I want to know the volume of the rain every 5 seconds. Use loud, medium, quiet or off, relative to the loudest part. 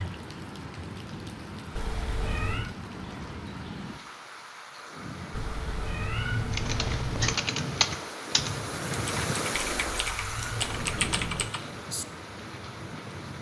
medium, loud, loud.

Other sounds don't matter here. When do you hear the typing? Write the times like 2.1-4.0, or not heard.
6.5-12.1.